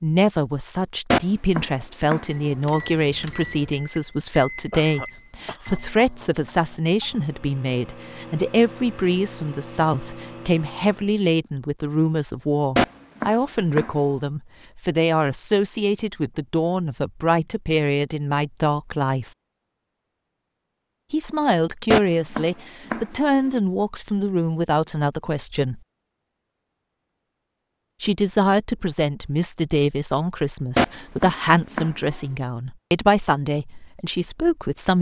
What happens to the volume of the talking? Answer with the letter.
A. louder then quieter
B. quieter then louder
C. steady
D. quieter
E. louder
C.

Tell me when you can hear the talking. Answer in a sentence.
You can hear the talking from 0.0 to 19.2 s, from 21.1 to 25.8 s and from 28.0 to 34.9 s.